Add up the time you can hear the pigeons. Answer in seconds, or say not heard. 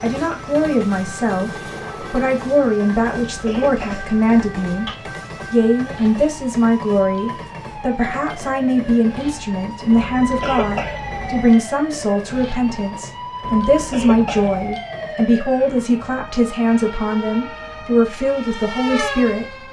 not heard.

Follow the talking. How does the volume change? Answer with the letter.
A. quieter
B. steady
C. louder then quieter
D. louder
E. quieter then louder
B.